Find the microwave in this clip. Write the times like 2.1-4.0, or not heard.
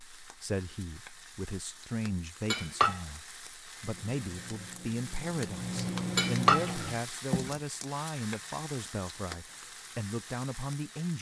3.8-7.0.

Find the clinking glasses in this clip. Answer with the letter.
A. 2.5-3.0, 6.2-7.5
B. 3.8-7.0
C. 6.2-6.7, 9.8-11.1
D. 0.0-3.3
A.